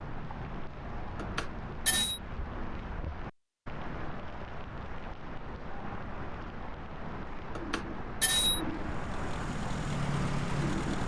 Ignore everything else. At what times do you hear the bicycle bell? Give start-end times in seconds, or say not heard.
1.1-2.2, 7.5-8.6.